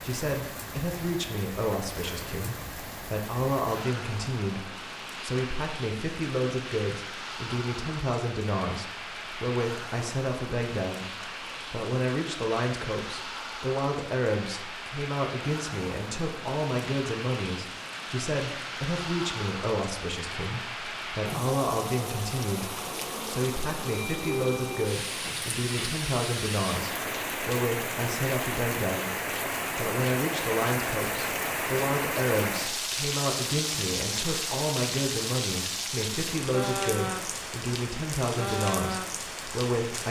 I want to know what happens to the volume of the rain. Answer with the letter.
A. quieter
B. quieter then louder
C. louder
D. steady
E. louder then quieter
C.